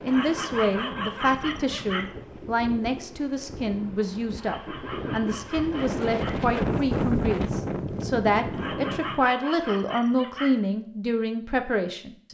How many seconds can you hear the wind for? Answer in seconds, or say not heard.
9 s.